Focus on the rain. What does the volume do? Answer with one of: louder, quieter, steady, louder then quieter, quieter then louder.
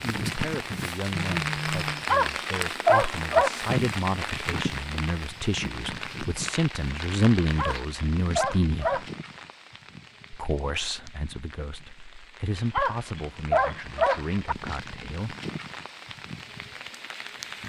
quieter then louder.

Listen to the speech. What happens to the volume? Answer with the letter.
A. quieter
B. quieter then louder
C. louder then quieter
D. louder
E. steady
C.